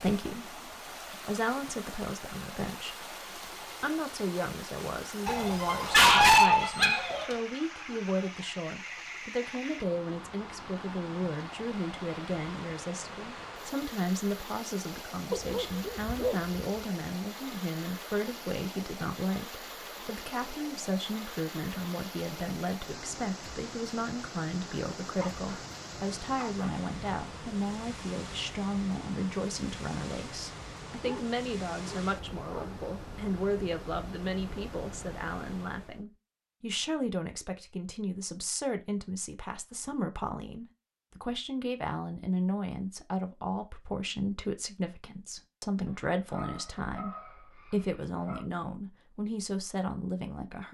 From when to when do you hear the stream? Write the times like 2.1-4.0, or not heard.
0.0-36.0.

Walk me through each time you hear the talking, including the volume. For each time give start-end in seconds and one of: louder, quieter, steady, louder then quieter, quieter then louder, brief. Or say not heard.
0.0-50.6 steady.